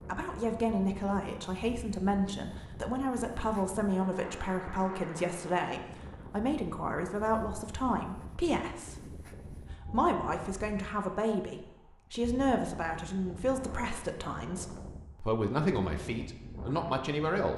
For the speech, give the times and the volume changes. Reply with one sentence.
You can hear the speech from 0.1 to 17.5 s, at a steady volume.